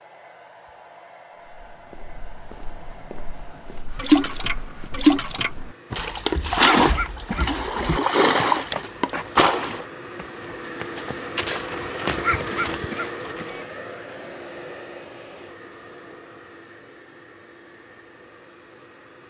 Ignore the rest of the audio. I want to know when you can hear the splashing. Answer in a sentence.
The splashing can be heard from 4.0 to 9.8 s.